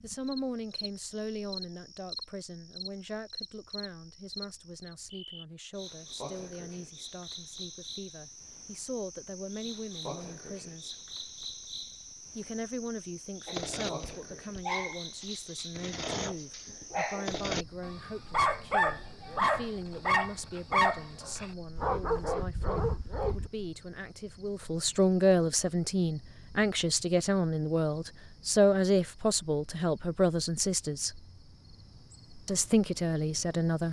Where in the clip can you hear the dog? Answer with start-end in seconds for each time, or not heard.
13.4-23.5.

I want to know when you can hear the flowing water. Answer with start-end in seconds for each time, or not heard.
not heard.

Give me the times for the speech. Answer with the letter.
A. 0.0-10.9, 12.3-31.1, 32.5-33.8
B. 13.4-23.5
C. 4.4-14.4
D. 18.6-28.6
A.